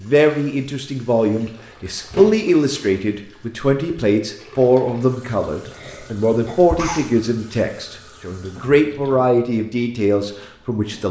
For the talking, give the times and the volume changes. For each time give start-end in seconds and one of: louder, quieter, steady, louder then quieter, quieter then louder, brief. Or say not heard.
0.0-11.0 steady.